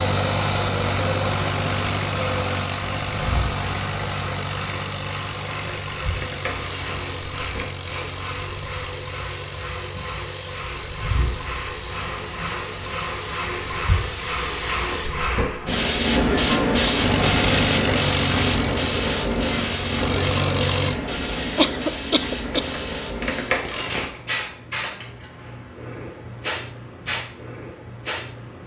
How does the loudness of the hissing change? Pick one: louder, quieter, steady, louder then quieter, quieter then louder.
louder then quieter.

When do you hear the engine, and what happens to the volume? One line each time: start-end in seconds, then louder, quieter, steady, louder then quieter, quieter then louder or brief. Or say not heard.
0.0-14.2 quieter
16.9-21.0 quieter then louder.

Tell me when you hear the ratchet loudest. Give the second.
24 s.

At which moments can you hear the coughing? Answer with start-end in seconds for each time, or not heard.
21.6-22.8.